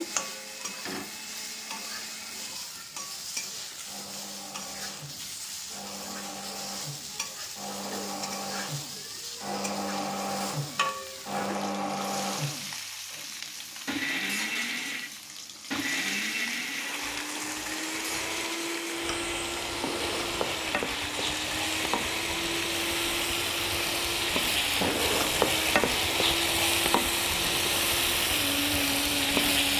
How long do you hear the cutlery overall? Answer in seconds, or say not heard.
not heard.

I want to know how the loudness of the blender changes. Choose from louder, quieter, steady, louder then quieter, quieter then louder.
louder.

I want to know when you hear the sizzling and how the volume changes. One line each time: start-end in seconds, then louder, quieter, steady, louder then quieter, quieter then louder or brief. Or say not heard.
0.0-29.7 louder.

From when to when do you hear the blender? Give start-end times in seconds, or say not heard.
0.0-29.7.